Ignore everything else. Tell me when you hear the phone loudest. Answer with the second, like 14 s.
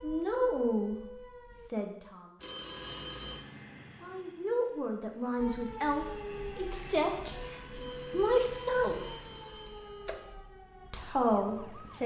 3 s.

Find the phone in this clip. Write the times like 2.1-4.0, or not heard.
2.4-3.5, 7.7-10.4.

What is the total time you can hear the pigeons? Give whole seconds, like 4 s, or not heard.
not heard.